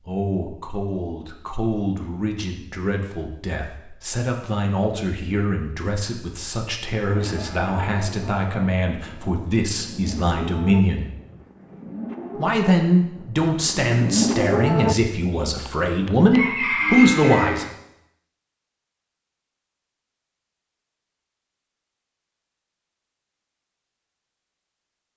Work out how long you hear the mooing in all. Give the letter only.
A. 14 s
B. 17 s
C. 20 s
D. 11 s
D.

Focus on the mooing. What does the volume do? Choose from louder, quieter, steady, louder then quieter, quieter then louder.
louder then quieter.